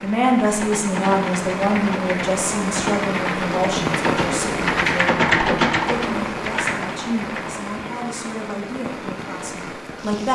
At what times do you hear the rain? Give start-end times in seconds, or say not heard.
0.0-10.3.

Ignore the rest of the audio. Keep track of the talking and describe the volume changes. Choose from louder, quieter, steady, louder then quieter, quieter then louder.
quieter.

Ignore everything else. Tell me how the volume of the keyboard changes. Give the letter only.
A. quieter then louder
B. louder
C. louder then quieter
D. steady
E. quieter
C.